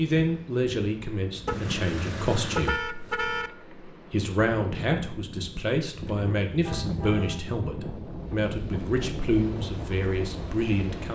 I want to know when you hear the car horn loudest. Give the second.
3 s.